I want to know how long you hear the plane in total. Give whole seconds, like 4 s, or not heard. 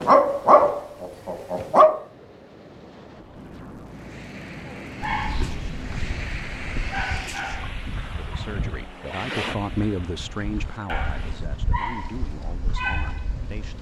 10 s.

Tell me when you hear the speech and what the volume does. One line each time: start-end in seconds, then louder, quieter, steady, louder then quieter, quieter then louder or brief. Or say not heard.
8.2-13.7 louder then quieter.